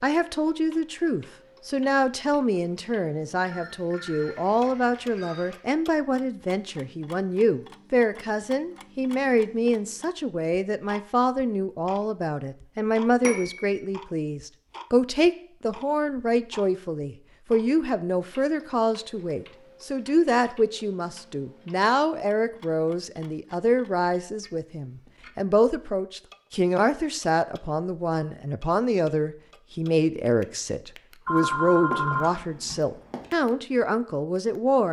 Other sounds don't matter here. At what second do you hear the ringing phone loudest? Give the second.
32 s.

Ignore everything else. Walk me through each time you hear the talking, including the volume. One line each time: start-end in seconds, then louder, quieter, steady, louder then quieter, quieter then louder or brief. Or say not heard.
0.0-34.8 steady.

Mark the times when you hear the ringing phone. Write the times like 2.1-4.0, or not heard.
3.5-5.6, 13.2-13.8, 31.2-33.2.